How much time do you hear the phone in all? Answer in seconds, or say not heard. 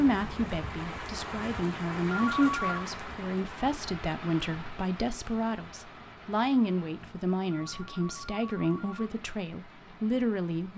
2 s.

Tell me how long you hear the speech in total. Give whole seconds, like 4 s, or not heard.
11 s.